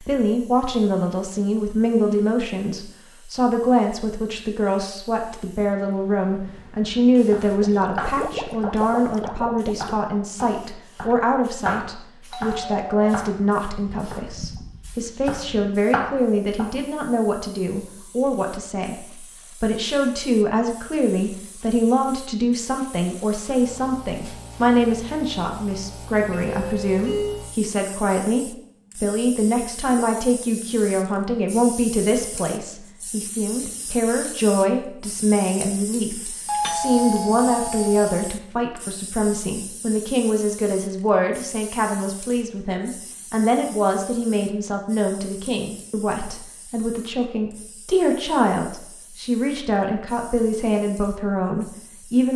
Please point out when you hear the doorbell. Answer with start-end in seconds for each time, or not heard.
12.3-13.2, 26.3-27.4, 36.5-38.3.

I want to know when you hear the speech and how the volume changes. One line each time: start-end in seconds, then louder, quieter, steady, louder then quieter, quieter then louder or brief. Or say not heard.
0.0-52.3 steady.